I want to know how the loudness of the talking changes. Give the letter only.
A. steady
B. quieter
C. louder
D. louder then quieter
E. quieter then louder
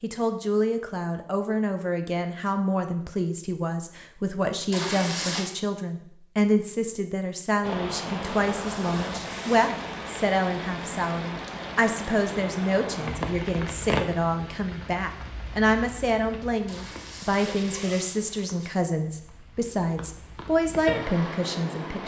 A.